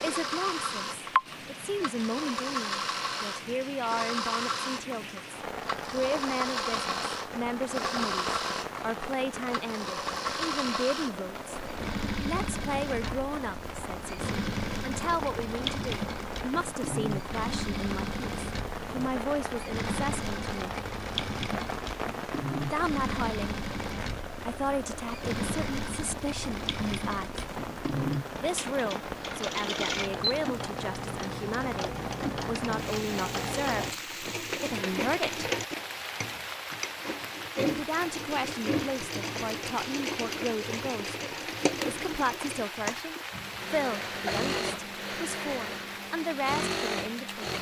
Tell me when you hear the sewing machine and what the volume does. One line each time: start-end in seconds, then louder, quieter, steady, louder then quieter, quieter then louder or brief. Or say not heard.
0.0-47.5 steady.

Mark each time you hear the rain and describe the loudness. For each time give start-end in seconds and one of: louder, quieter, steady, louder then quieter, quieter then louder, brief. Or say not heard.
0.0-47.5 steady.